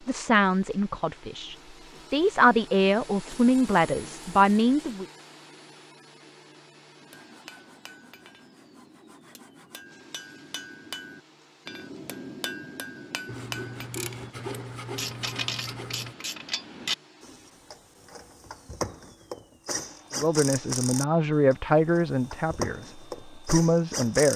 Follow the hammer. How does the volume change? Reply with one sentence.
The volume of the hammer goes up.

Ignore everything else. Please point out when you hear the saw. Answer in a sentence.
You can hear the saw from 7.1 to 9.9 s and from 13.2 to 16.1 s.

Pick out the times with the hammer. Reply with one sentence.
The hammer can be heard from 7.0 to 13.9 s.